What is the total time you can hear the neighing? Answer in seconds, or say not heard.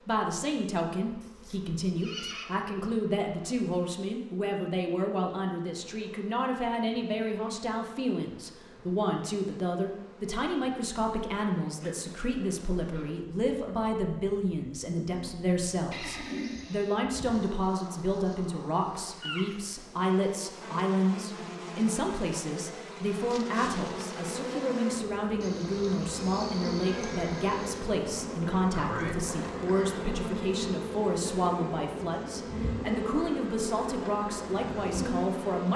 5 s.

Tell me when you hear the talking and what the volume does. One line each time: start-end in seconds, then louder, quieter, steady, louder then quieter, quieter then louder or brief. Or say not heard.
0.0-35.7 steady.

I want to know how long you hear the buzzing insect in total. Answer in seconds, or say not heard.
36 s.